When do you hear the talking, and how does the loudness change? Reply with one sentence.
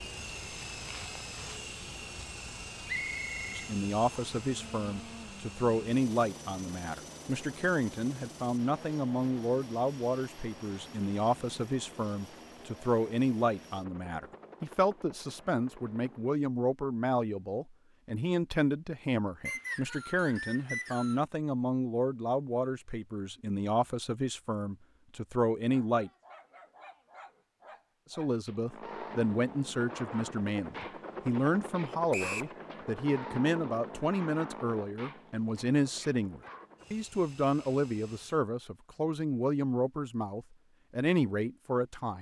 The talking can be heard from 3.5 to 26.1 s, at a steady volume; and from 28.1 to 42.1 s, at a steady volume.